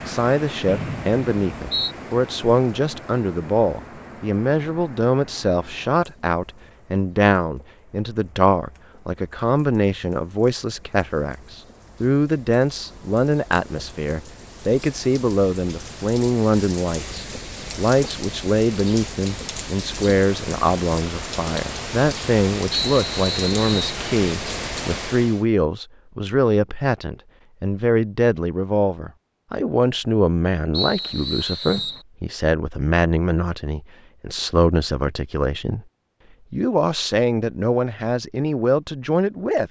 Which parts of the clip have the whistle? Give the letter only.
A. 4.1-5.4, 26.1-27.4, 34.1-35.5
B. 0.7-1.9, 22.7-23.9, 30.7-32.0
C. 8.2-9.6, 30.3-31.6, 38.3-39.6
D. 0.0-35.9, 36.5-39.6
B.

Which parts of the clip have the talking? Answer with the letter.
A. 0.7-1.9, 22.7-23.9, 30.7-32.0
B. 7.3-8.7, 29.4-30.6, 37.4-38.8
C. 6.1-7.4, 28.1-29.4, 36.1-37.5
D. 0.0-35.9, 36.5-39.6
D.